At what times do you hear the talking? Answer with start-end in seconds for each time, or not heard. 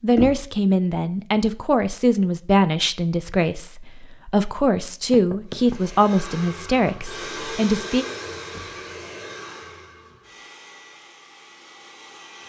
0.0-8.1.